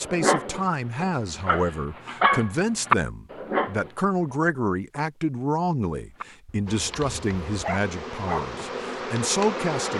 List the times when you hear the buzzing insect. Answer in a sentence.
You can hear the buzzing insect from 6.7 to 9.9 s.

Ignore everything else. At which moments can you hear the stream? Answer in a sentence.
You can't hear the stream here.